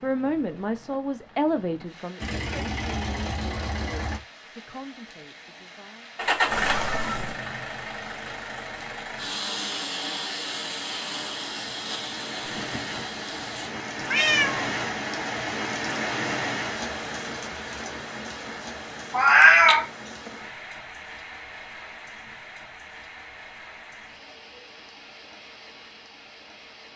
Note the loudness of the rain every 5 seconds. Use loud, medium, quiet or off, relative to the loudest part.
quiet, quiet, loud, loud, medium, quiet.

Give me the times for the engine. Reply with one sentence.
You can hear the engine from 2.1 to 4.2 s and from 6.2 to 13.7 s.